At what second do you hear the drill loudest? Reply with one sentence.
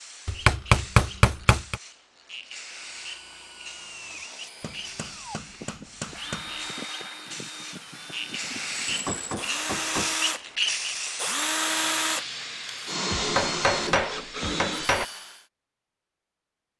The volume of the drill peaks at 12 seconds.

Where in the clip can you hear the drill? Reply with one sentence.
You can hear the drill from 2.6 to 15.4 s.